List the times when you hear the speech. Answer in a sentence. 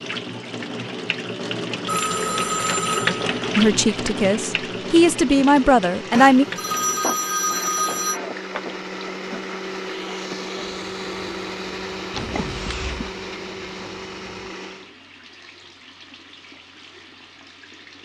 You can hear the speech from 3.5 to 6.5 s.